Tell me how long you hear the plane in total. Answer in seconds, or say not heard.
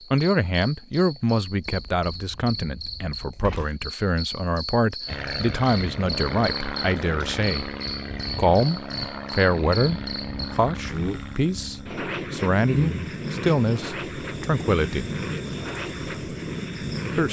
12 s.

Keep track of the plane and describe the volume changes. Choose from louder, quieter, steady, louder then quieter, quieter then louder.
steady.